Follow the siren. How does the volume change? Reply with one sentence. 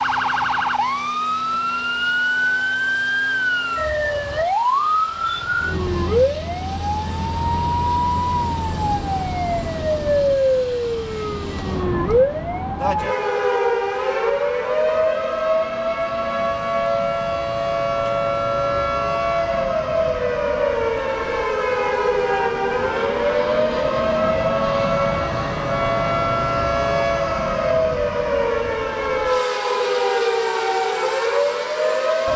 The volume of the siren stays about the same.